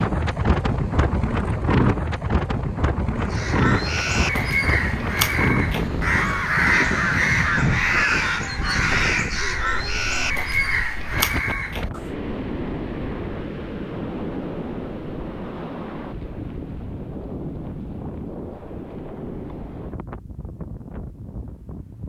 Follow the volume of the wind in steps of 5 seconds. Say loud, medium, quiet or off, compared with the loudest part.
loud, loud, medium, medium, quiet.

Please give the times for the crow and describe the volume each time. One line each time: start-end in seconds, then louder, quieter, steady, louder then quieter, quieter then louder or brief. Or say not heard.
3.2-12.2 steady.